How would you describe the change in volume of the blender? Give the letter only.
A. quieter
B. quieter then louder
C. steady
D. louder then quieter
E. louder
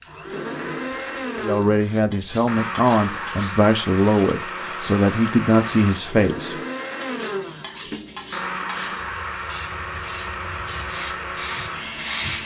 C.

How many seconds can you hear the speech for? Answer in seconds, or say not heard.
5 s.